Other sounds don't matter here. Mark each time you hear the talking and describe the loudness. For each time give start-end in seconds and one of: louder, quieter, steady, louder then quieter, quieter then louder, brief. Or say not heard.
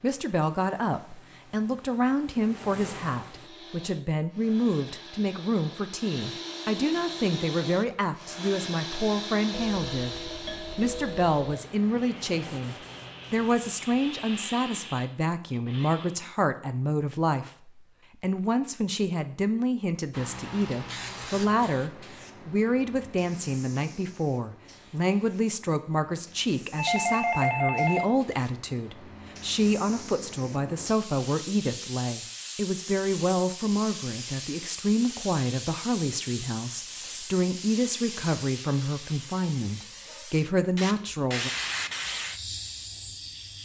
0.0-41.5 steady.